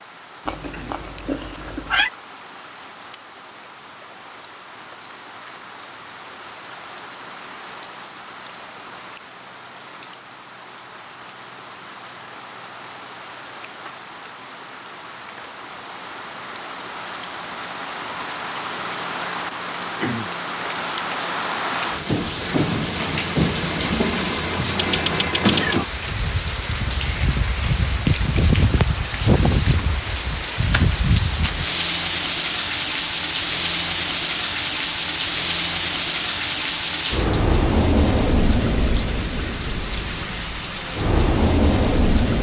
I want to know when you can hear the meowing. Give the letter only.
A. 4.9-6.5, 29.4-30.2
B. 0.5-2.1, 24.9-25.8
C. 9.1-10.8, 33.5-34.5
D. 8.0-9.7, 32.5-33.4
B.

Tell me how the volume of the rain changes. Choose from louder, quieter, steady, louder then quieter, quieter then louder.
louder.